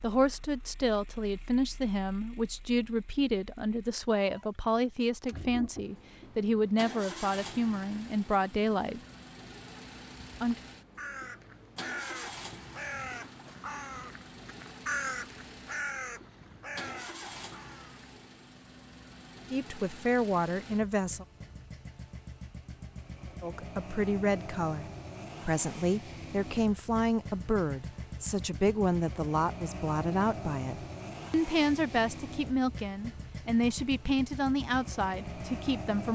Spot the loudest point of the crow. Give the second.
15 s.